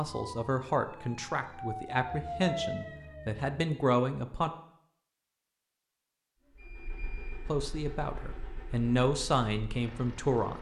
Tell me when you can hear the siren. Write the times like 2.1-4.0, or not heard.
0.0-3.5.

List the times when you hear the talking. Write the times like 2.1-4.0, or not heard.
0.0-4.5, 7.5-10.5.